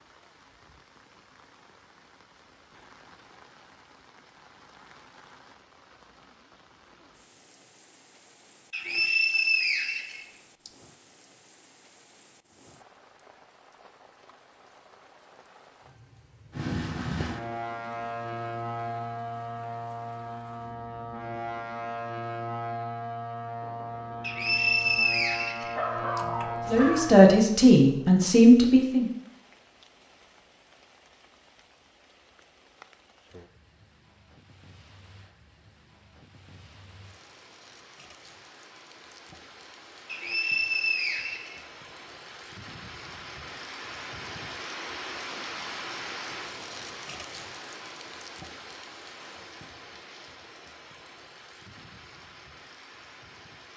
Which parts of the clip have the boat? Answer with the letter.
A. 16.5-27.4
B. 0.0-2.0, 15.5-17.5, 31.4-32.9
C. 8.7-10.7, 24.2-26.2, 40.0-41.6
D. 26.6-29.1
A.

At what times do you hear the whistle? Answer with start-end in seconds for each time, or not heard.
8.7-10.7, 24.2-26.2, 40.0-41.6.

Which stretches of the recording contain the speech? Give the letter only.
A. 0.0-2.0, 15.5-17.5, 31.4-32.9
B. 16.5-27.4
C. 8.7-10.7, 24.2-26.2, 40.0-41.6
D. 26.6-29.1
D.